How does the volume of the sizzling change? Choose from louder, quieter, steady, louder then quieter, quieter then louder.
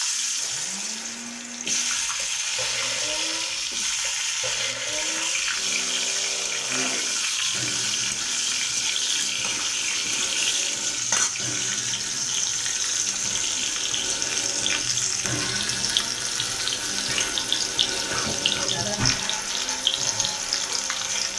steady.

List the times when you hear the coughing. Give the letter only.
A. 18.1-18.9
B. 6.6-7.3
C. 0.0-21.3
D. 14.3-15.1
A.